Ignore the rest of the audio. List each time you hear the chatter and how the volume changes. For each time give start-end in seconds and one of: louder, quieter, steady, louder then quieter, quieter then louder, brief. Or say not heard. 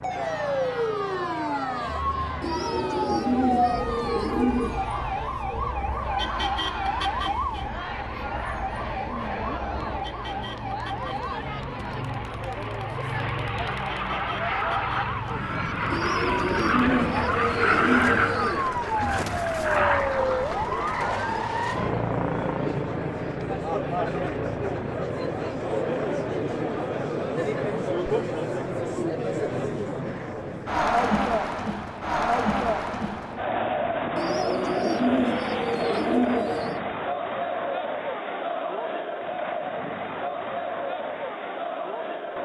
0.1-42.3 louder.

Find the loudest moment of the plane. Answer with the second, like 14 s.
18 s.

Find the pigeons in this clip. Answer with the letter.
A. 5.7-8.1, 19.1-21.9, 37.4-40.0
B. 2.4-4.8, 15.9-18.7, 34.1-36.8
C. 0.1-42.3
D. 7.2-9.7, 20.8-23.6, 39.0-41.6
B.